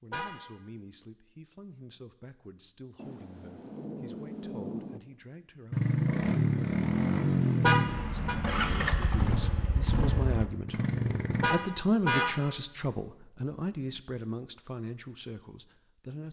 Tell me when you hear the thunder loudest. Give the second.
5 s.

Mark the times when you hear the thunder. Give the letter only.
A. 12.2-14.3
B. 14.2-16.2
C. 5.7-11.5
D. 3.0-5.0
D.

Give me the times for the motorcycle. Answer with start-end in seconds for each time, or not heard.
5.7-11.5.